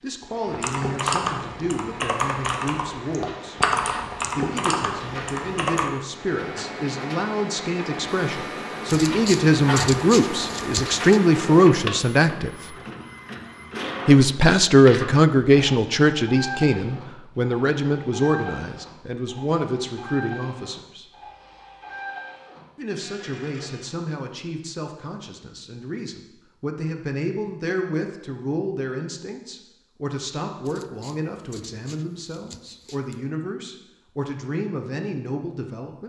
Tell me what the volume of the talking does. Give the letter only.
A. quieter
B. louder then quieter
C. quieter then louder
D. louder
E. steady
B.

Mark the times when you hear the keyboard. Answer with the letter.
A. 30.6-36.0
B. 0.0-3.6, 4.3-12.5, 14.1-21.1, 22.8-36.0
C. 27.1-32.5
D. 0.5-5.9
D.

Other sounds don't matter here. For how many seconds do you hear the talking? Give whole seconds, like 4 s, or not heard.
32 s.